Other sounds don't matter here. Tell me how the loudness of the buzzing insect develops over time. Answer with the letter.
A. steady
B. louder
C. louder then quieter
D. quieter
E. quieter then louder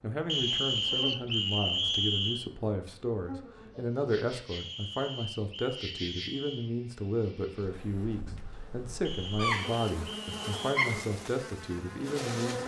B.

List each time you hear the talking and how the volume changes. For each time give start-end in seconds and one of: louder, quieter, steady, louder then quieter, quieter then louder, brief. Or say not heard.
0.0-12.6 steady.